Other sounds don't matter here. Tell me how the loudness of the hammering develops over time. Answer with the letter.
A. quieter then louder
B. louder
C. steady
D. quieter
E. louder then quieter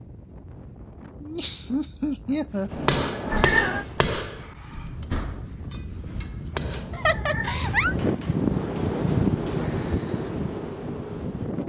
D.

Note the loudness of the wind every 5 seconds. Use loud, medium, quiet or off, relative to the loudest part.
quiet, loud, loud.